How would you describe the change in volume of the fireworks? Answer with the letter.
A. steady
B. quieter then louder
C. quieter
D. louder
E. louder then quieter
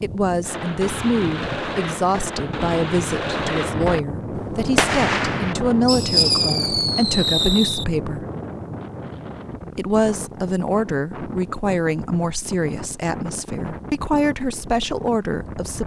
D.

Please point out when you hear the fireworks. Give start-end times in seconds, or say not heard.
0.4-7.8.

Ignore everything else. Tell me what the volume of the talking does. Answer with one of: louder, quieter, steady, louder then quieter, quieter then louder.
steady.